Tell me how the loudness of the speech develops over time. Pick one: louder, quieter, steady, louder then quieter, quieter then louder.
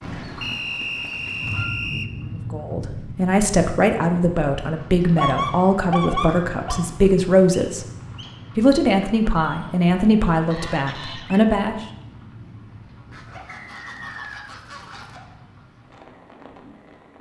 steady.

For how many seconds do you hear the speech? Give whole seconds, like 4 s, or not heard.
9 s.